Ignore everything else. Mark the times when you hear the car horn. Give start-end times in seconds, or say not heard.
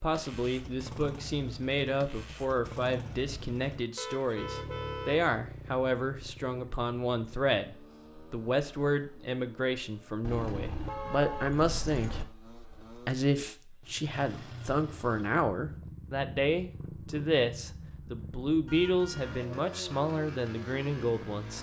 4.0-5.2, 10.2-12.2, 18.6-19.4.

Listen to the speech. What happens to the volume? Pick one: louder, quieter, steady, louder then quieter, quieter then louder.
steady.